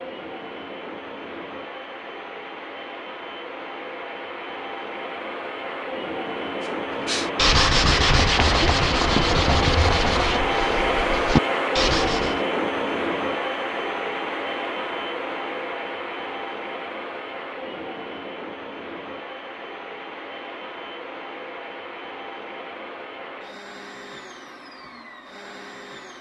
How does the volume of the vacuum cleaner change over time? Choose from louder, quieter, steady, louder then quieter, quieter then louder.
louder then quieter.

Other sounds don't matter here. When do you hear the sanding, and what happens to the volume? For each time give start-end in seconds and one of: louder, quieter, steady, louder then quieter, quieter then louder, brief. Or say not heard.
7.0-12.4 quieter then louder.